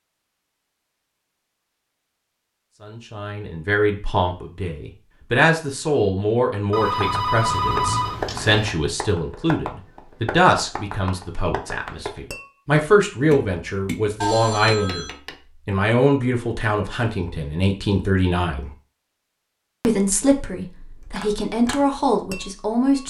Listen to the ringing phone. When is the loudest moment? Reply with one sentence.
The volume of the ringing phone peaks at 8 seconds.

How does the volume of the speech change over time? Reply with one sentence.
The volume of the speech stays about the same.